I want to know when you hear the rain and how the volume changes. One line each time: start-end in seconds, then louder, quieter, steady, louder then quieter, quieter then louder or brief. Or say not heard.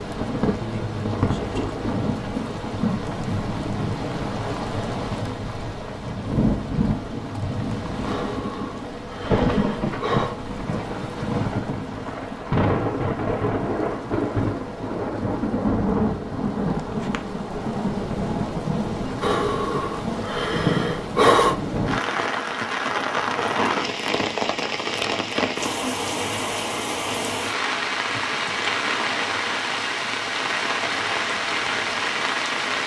0.0-32.8 steady.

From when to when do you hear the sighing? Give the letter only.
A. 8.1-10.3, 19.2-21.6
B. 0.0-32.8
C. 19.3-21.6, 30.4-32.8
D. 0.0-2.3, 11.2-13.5
A.